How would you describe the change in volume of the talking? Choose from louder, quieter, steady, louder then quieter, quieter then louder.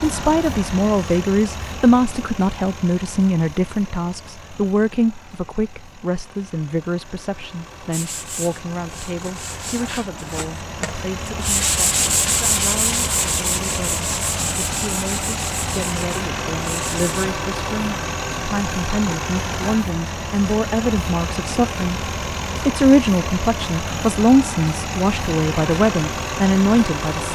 quieter then louder.